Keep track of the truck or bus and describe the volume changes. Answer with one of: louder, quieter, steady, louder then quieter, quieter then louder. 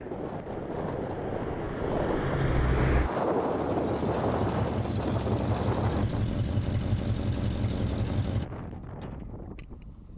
louder.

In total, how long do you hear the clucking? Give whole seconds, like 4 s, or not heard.
not heard.